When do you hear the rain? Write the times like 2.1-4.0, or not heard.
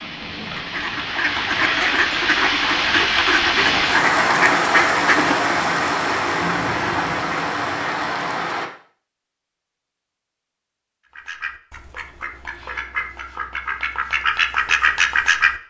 0.0-8.7.